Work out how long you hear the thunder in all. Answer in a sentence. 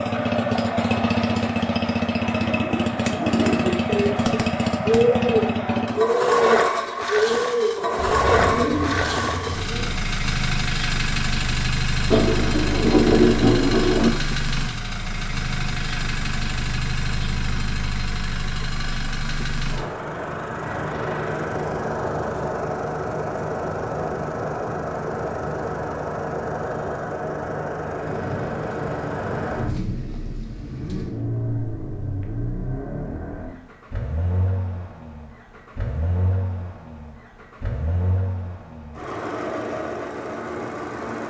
The thunder can be heard for 5 seconds in total.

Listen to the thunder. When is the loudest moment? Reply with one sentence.
The loudest moment of the thunder is at 13 seconds.